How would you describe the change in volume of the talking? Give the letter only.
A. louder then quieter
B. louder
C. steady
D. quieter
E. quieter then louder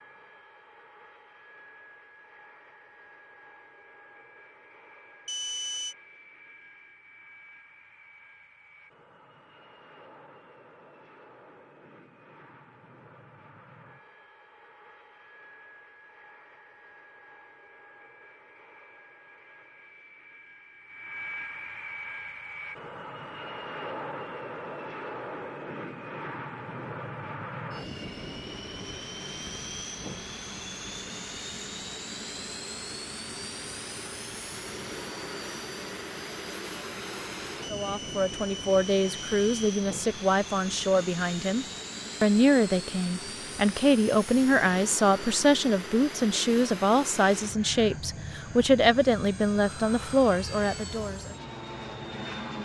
C.